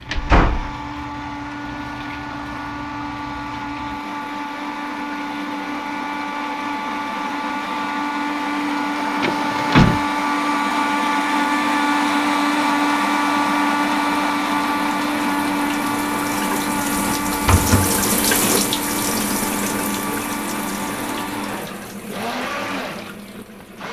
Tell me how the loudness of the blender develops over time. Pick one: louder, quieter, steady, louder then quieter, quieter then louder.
louder then quieter.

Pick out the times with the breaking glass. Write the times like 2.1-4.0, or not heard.
not heard.